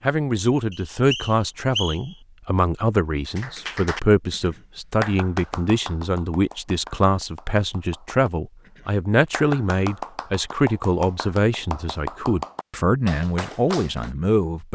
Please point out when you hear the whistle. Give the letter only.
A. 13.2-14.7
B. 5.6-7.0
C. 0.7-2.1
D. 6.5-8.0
C.